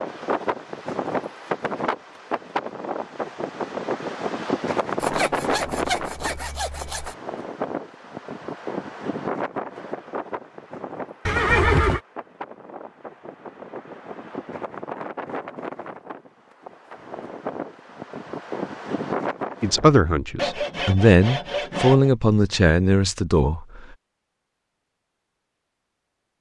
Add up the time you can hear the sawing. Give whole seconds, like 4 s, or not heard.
4 s.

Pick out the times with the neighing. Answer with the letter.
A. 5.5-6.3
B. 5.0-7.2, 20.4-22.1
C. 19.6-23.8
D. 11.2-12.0
D.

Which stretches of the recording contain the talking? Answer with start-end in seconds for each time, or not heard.
19.6-23.8.